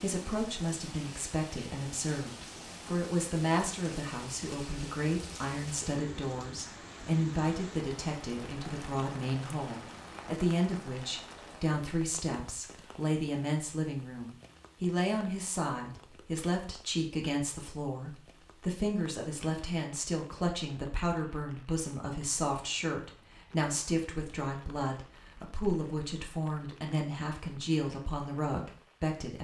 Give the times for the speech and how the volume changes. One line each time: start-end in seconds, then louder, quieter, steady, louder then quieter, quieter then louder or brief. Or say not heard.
0.0-29.3 steady.